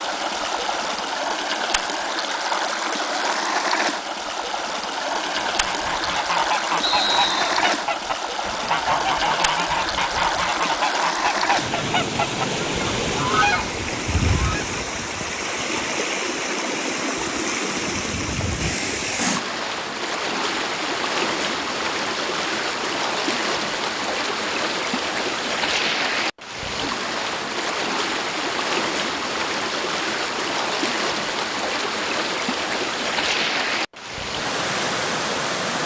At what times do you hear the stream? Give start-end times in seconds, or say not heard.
0.0-35.8.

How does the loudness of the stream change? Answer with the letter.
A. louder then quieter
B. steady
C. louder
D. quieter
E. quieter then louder
B.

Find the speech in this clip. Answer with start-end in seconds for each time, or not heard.
not heard.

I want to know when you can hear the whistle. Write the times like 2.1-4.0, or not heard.
6.8-7.7.